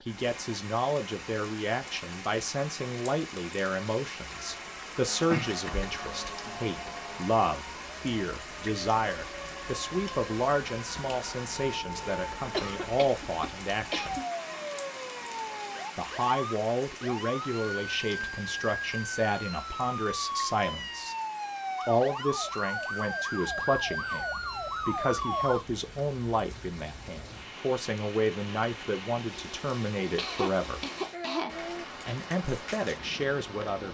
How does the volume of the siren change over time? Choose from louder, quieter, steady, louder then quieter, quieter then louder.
louder.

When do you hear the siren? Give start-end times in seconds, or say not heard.
4.3-25.6.